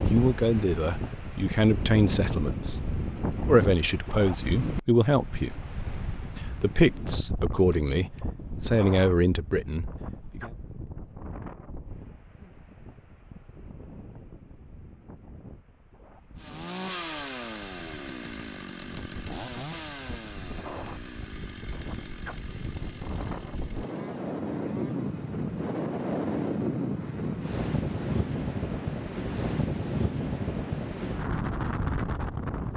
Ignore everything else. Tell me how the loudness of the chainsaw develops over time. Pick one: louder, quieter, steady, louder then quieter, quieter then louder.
quieter.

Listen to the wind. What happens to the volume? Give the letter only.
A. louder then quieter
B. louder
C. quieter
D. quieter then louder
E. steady
D.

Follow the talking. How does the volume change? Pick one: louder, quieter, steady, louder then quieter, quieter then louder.
steady.